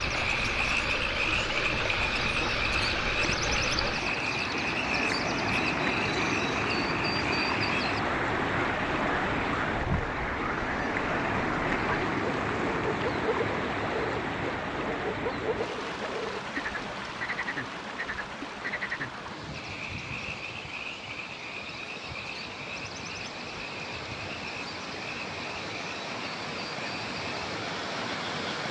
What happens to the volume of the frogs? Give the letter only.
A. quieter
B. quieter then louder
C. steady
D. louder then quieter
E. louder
A.